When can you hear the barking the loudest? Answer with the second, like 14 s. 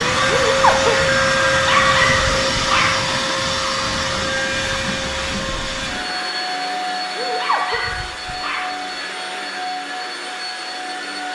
2 s.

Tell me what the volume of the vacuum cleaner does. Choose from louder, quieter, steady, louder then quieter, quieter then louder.
quieter.